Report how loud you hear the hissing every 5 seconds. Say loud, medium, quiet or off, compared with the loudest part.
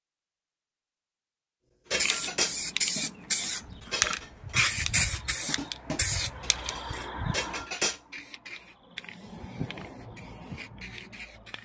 loud, medium, quiet.